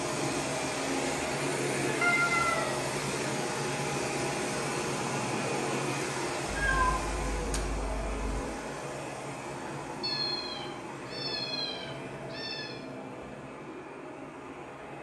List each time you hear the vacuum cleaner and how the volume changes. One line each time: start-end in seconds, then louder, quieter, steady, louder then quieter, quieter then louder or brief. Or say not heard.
0.0-14.9 quieter.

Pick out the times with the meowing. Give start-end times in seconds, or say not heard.
2.0-2.7, 6.5-8.4, 10.0-12.8.